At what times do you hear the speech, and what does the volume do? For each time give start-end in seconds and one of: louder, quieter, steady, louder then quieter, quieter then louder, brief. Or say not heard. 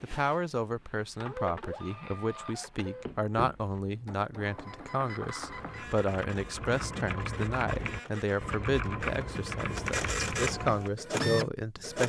0.0-12.0 steady.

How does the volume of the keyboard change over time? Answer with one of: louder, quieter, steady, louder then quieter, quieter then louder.
louder.